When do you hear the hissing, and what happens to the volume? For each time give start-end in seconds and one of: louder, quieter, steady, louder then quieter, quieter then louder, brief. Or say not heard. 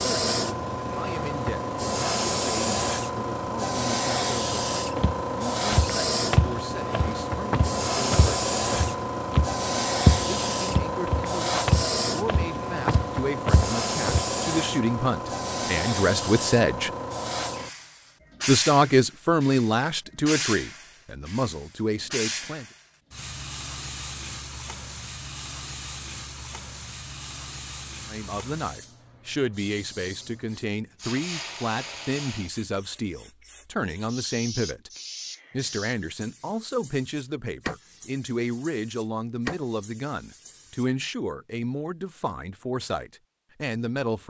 0.0-40.9 quieter.